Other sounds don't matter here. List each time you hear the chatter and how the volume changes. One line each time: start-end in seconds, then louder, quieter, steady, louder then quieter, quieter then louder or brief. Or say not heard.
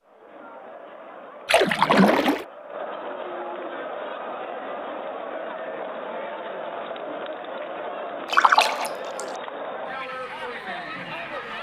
0.0-11.5 louder.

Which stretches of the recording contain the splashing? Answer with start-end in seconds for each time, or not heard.
1.4-2.5, 8.2-9.2.